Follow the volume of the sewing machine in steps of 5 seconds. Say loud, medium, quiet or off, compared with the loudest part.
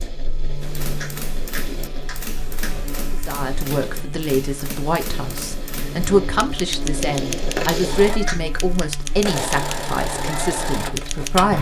medium, loud, loud.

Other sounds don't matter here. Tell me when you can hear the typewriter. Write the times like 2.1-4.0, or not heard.
0.6-11.4.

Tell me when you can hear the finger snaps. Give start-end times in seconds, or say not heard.
1.0-2.8, 8.2-8.8.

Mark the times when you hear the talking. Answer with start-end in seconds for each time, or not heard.
3.1-11.5.